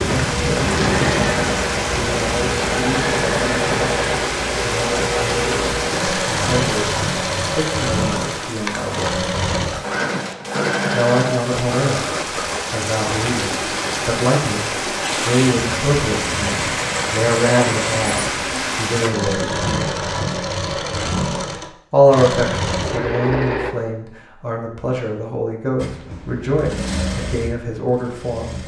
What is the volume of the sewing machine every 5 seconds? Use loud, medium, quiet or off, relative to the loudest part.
loud, loud, loud, loud, loud, medium.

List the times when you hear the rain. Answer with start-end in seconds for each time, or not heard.
0.0-19.1.